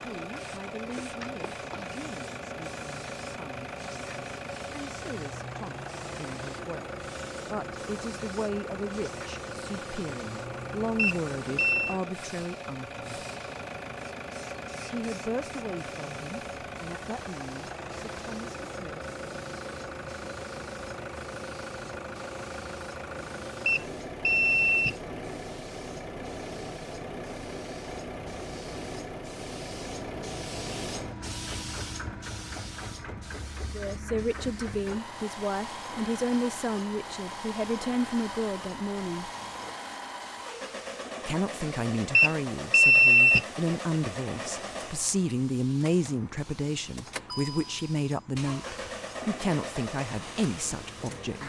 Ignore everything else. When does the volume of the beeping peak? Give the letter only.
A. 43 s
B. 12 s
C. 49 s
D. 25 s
A.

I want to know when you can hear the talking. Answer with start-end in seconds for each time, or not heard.
0.0-13.2, 14.9-19.1, 33.7-39.3, 41.2-51.4.